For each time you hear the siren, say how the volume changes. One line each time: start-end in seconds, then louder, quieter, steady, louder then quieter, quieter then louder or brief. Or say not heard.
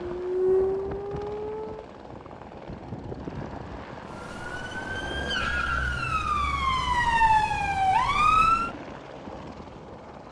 0.1-1.9 brief
4.1-8.7 louder.